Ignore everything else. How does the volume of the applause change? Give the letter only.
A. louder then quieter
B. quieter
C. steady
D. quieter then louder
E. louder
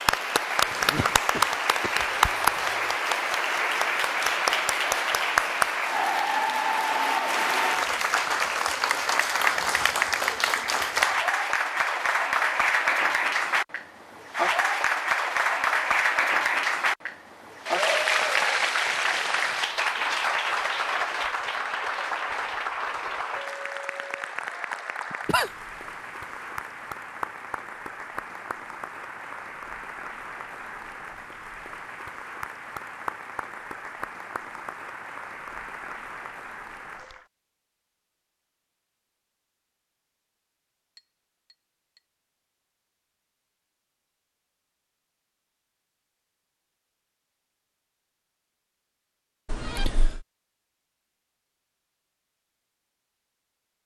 B.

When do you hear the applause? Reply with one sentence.
The applause can be heard from 0.0 to 37.2 s.